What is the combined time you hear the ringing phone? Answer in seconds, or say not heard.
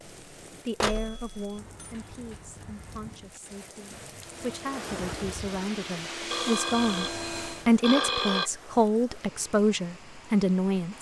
3 s.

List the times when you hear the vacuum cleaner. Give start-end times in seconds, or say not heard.
4.2-7.7.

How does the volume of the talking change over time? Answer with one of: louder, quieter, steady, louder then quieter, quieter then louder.
louder.